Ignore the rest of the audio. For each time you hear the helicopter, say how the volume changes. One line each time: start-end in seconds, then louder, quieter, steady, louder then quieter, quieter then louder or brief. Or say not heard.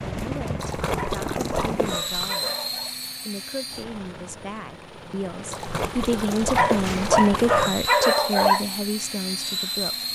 0.0-10.1 quieter then louder.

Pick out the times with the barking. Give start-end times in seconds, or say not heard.
0.8-3.0, 6.4-8.7.